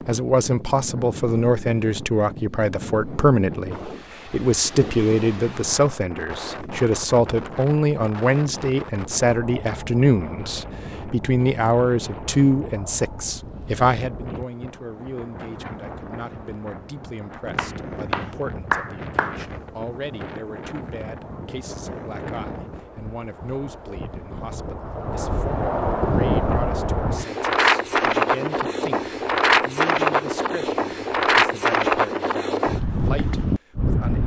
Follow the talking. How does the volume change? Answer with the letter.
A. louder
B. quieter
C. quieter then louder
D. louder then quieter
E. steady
B.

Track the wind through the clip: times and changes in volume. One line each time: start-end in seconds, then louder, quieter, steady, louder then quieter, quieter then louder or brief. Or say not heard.
0.0-34.2 louder.